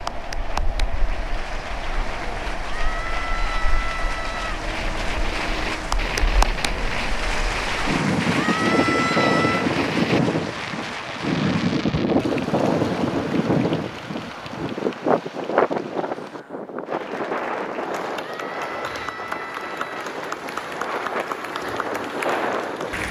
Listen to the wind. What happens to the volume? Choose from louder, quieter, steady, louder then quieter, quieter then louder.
louder then quieter.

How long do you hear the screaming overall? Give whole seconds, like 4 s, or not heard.
5 s.